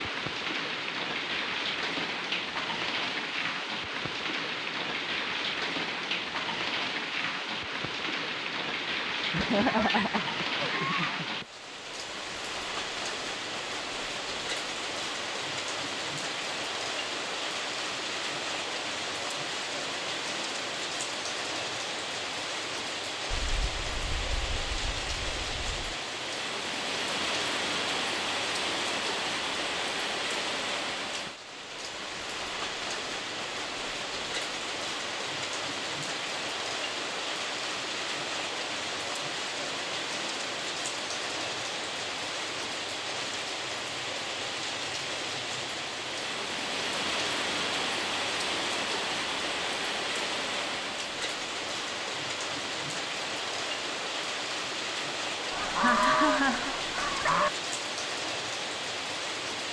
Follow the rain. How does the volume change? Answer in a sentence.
The loudness of the rain stays about the same.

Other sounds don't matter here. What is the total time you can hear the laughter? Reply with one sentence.
The laughter can be heard for 3 seconds in total.